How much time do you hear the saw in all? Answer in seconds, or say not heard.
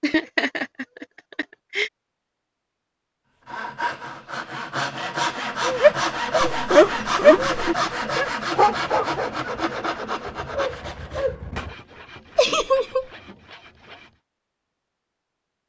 11 s.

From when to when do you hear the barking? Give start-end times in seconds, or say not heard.
5.6-11.8.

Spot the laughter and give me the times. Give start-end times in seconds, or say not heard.
0.0-1.9, 6.5-7.8, 12.3-13.1.